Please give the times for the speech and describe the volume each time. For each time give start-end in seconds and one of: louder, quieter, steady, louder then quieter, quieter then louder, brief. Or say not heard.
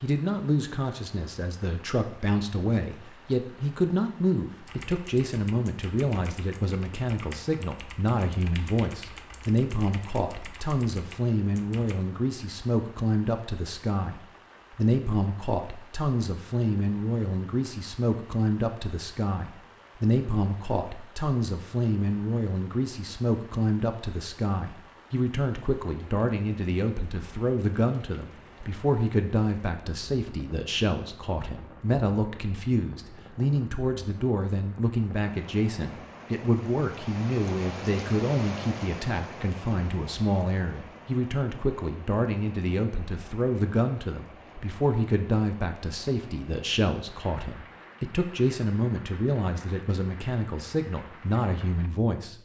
0.0-52.3 steady.